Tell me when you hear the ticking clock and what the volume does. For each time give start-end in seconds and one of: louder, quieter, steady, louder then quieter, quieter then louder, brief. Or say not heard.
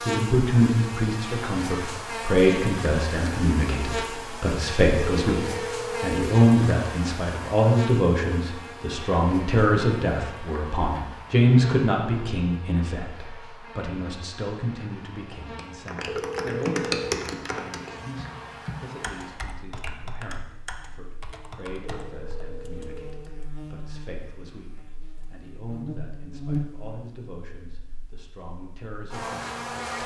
not heard.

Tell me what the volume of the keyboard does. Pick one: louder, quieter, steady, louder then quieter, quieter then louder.
quieter.